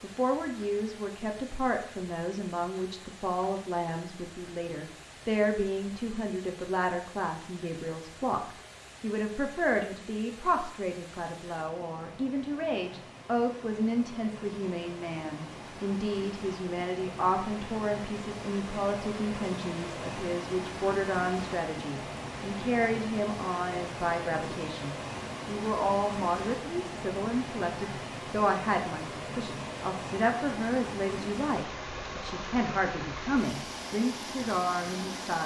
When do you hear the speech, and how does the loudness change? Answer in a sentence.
You can hear the speech from 0.0 to 35.4 s, at a steady volume.